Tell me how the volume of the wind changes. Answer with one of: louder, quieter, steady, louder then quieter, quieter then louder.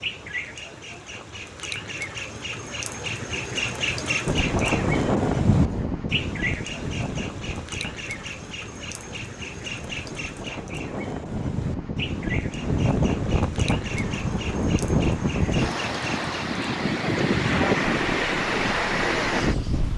quieter then louder.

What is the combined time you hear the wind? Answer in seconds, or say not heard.
16 s.